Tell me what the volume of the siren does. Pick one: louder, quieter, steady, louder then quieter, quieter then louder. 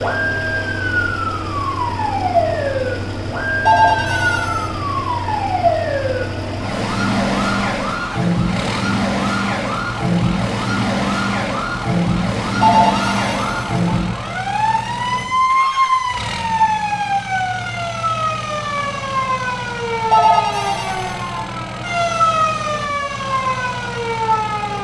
steady.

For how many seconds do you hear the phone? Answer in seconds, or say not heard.
3 s.